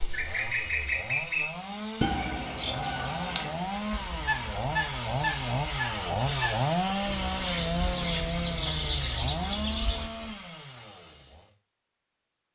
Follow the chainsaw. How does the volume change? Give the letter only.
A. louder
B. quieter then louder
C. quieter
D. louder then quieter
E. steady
D.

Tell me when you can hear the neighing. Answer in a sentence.
The neighing can't be heard in this clip.